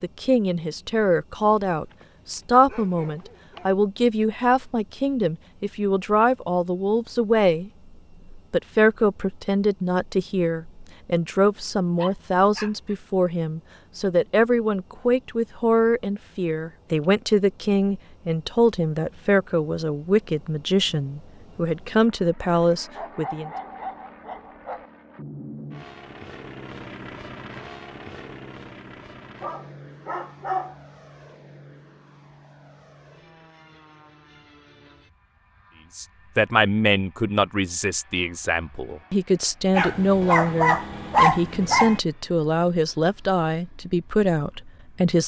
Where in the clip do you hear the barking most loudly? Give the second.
41 s.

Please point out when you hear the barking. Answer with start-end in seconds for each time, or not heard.
1.9-3.7, 11.9-12.9, 22.9-24.9, 29.4-30.8, 39.7-42.0.